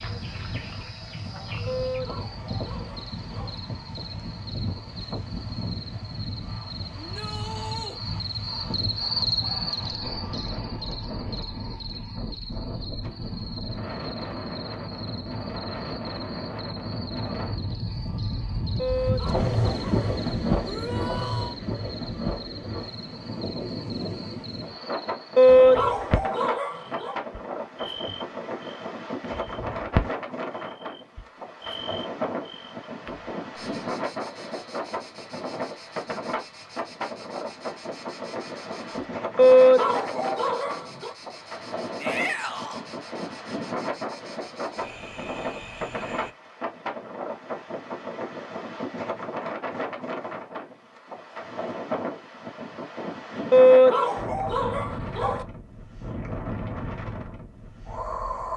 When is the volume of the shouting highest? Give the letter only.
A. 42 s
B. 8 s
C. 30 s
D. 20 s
A.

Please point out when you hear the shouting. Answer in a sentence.
The shouting can be heard from 7.0 to 8.0 s, from 20.6 to 21.6 s and from 42.0 to 42.9 s.